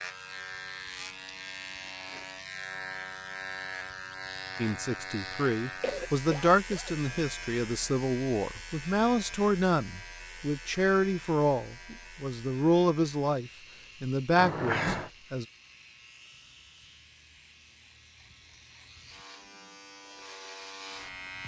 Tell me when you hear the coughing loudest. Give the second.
15 s.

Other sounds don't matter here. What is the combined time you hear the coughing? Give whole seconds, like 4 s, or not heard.
2 s.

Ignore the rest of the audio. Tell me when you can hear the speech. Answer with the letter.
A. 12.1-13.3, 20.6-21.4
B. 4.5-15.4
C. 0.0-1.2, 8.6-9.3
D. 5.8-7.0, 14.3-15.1
B.